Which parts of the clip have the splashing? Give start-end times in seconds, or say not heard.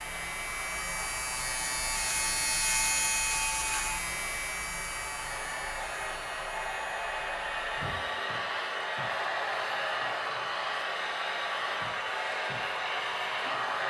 not heard.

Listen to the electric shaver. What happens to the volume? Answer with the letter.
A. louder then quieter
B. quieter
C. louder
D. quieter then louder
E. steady
B.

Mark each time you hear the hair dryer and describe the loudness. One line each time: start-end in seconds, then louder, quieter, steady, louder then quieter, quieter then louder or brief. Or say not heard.
0.0-13.8 louder.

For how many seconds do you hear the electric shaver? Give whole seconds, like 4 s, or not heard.
14 s.